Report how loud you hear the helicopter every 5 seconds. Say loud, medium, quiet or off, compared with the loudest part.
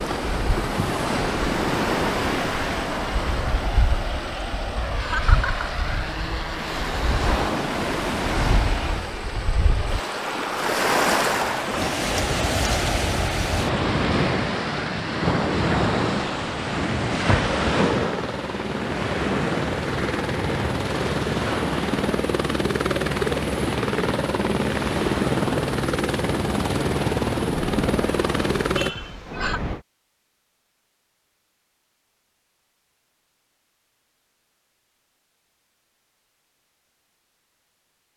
medium, medium, medium, medium, loud, loud, off, off.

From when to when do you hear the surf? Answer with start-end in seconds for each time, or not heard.
0.0-29.9.